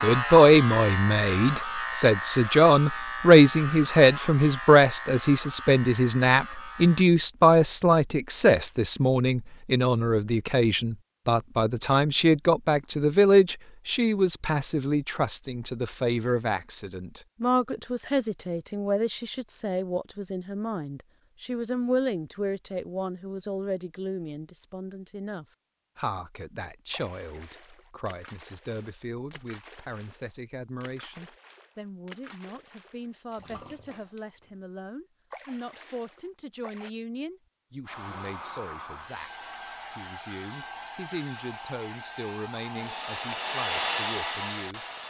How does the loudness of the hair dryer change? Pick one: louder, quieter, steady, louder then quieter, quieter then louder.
louder.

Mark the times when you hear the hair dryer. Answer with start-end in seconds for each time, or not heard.
37.9-45.0.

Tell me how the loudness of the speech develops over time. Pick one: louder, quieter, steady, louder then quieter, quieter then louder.
quieter.